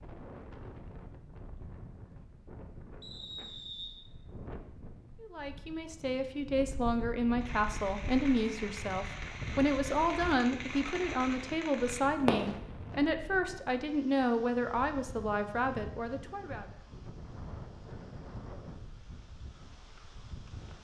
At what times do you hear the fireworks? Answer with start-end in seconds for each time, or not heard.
7.3-12.8.